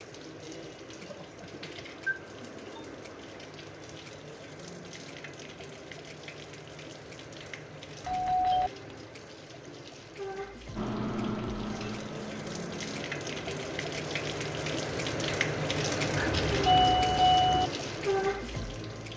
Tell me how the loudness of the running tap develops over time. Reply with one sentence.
The volume of the running tap goes up.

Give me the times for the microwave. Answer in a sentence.
You can hear the microwave from 10.8 to 13.1 s.